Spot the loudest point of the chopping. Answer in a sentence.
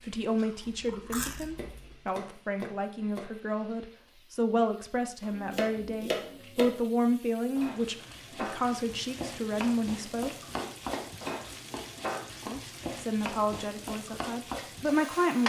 The volume of the chopping peaks at 6 seconds.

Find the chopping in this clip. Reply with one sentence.
You can hear the chopping from 1.6 to 3.4 s, from 5.2 to 6.7 s and from 10.5 to 12.5 s.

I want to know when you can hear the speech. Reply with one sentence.
The speech can be heard from 0.0 to 10.3 s and from 12.4 to 15.4 s.